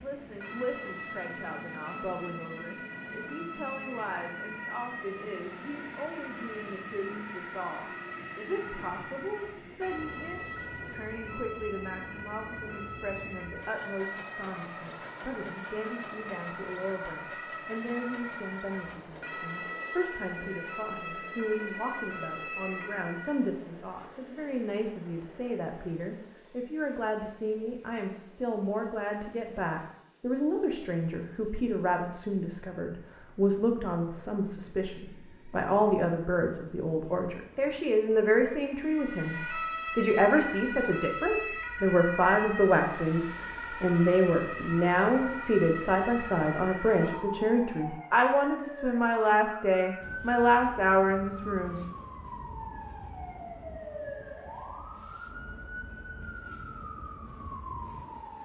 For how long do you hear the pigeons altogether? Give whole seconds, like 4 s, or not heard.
not heard.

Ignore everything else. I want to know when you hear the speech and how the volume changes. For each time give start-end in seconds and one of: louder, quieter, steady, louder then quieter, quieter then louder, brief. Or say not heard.
0.0-51.9 louder.